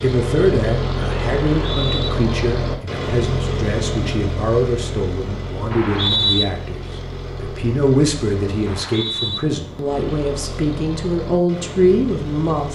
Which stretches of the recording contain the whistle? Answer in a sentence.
The whistle can be heard from 1.6 to 2.1 s, from 5.7 to 6.5 s and from 8.7 to 9.4 s.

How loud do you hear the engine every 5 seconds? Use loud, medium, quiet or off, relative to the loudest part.
loud, medium, medium.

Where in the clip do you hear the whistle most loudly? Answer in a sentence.
The loudest moment of the whistle is at 6 seconds.